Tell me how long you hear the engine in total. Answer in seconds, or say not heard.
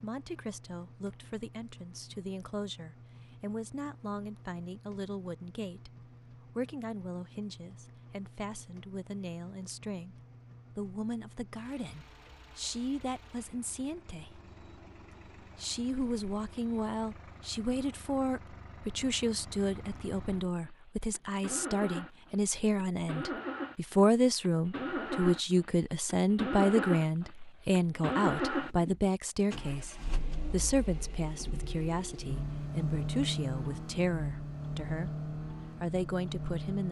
37 s.